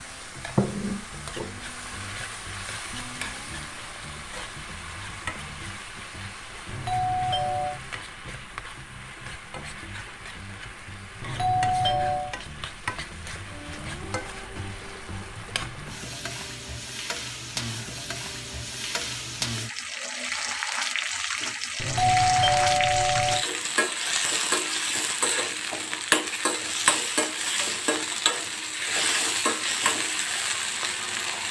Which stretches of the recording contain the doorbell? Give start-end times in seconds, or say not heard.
6.7-7.8, 11.2-12.3, 21.8-23.4.